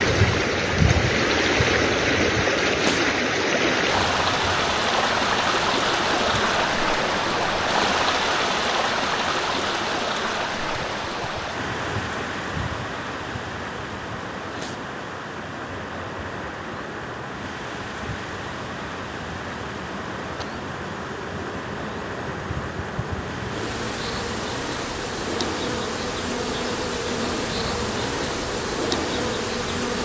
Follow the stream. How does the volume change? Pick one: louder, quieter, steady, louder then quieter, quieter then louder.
quieter.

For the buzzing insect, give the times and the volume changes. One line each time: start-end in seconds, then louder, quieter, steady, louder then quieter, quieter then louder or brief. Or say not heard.
0.0-29.9 quieter then louder.